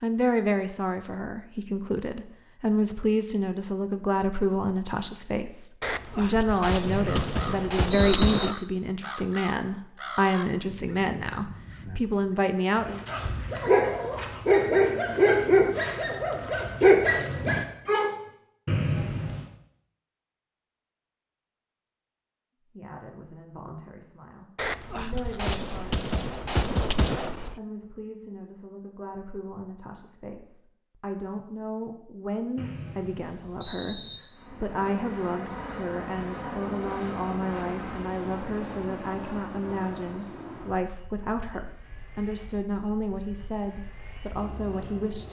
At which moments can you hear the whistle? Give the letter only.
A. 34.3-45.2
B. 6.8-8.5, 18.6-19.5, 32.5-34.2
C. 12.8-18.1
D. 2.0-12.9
B.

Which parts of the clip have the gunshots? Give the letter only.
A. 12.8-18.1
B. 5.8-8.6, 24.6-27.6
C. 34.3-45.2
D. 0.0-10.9
B.